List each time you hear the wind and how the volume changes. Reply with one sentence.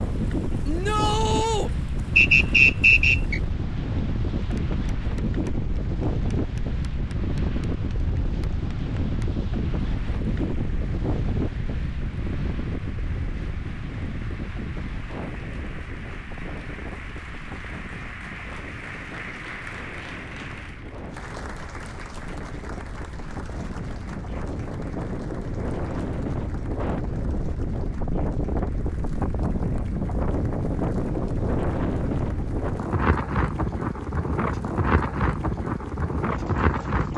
You can hear the wind from 0.0 to 37.1 s, getting quieter then louder.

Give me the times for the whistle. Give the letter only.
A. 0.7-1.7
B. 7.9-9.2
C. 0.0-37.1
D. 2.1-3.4
D.